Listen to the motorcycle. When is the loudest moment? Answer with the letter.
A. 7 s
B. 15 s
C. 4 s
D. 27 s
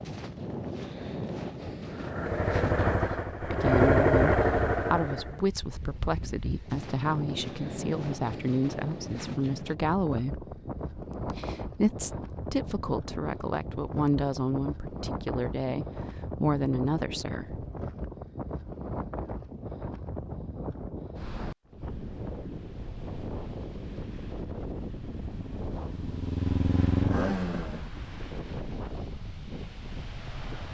C.